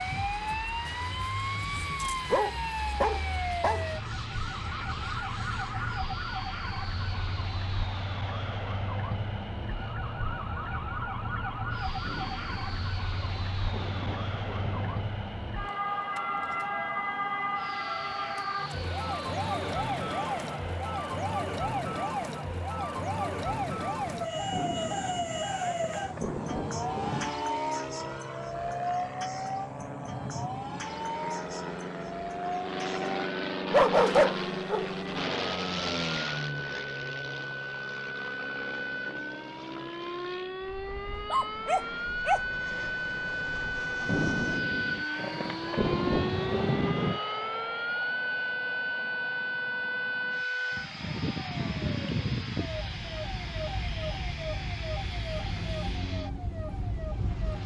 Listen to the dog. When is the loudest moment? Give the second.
34 s.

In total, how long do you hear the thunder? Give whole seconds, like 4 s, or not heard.
9 s.